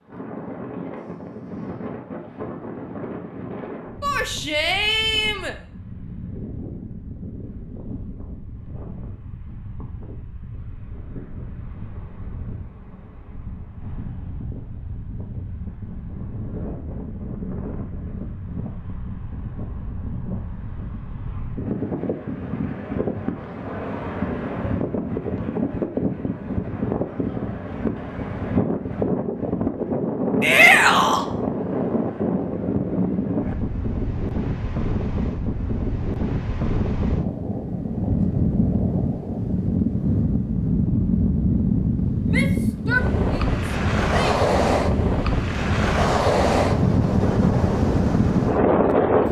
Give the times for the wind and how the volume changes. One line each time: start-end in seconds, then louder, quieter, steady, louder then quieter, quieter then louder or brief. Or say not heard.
0.0-49.2 louder.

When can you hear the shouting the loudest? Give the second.
31 s.